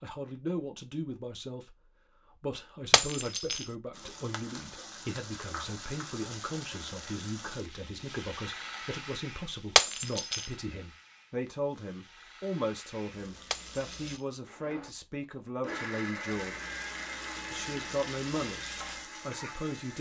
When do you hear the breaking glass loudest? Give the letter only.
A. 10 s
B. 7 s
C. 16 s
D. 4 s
A.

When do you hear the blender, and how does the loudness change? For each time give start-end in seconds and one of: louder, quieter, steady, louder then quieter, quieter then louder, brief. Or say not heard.
14.4-19.9 quieter.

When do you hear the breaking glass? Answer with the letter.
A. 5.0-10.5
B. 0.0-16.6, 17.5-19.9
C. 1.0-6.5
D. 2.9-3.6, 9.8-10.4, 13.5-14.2
D.